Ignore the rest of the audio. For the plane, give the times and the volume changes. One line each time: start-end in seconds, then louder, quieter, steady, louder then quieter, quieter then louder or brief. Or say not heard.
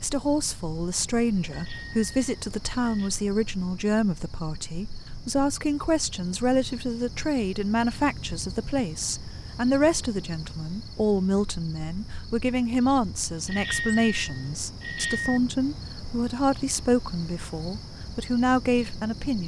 not heard.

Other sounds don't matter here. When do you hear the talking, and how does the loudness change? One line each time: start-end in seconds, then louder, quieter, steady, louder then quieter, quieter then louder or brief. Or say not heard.
0.0-19.4 steady.